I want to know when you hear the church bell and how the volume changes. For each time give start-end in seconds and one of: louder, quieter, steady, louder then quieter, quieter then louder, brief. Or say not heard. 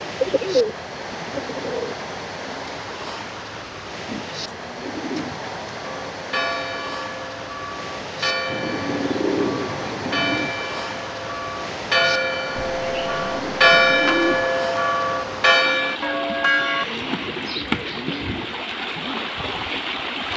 5.8-16.9 louder.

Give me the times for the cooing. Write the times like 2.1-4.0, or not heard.
0.2-1.9, 4.0-5.6, 8.4-10.6, 12.6-14.4, 16.6-18.6.